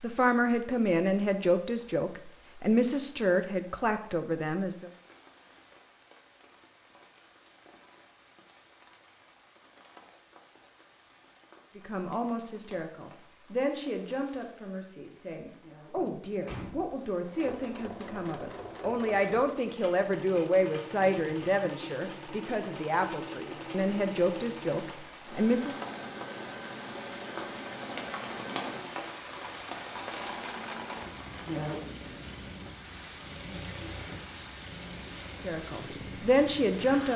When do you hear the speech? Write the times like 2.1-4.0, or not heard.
0.0-4.9, 11.8-25.8, 35.4-37.1.